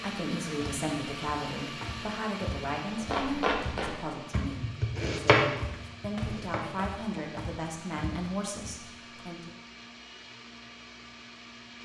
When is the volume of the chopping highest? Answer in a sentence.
The loudest moment of the chopping is at 5 seconds.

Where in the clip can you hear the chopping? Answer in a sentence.
The chopping can be heard from 3.0 to 7.2 s.